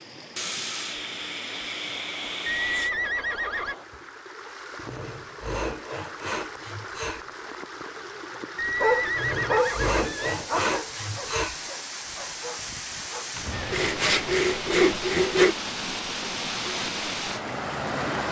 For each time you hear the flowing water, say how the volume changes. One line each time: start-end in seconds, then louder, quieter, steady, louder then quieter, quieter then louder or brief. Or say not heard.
0.0-18.2 louder.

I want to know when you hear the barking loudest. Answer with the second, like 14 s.
9 s.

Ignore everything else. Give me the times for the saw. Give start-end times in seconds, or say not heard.
0.3-2.9, 4.8-7.2, 9.2-11.7, 13.7-15.6.